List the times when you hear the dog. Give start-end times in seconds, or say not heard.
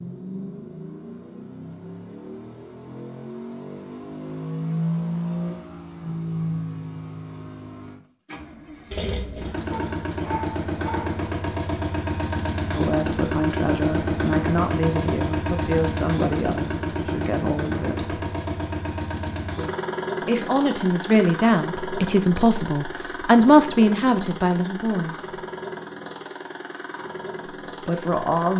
9.7-11.2.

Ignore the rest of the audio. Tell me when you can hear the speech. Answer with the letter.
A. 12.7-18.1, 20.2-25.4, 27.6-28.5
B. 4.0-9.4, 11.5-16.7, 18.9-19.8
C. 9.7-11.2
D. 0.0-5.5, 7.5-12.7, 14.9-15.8
A.